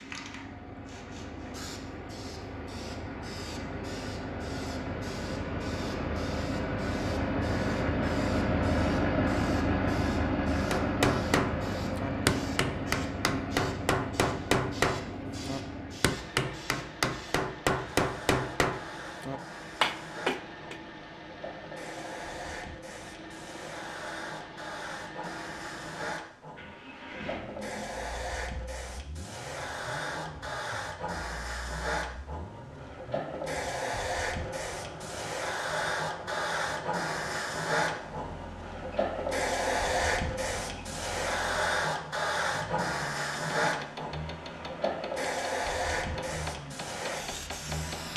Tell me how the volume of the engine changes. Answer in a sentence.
The volume of the engine goes down.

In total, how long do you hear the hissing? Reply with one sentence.
You can hear the hissing for 48 seconds altogether.